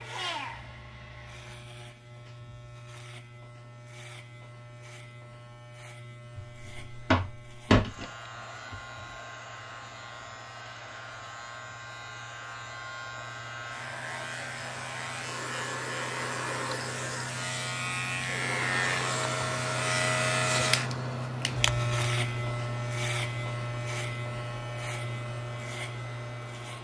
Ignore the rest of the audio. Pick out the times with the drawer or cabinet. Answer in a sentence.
You can hear the drawer or cabinet from 6.3 to 8.1 s.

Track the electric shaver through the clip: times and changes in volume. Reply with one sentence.
You can hear the electric shaver from 0.0 to 26.8 s, getting louder.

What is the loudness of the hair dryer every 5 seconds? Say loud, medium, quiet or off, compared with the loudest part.
loud, medium, medium, loud, medium, medium.